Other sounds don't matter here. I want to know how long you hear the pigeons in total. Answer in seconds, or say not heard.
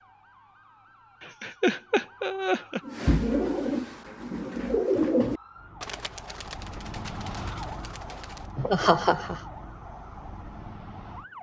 6 s.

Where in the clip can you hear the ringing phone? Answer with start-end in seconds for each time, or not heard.
not heard.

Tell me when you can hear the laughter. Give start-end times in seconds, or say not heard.
1.2-2.8, 8.6-9.4.